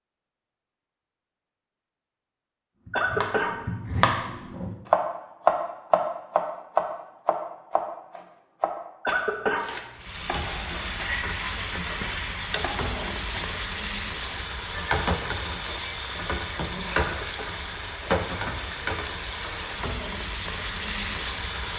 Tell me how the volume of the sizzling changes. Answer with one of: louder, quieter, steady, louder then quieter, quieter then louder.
steady.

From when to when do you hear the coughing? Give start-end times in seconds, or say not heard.
2.9-3.5, 9.1-9.7, 17.0-17.6.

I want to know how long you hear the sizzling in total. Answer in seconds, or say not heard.
12 s.